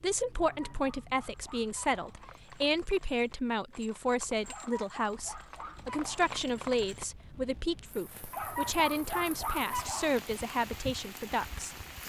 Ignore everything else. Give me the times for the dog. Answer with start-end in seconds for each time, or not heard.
0.4-2.4, 4.5-6.3, 8.3-10.2.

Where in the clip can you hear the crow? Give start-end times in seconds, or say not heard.
not heard.